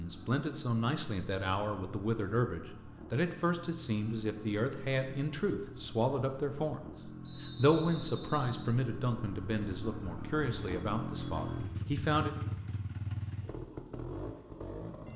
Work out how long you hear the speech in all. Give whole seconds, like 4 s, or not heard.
12 s.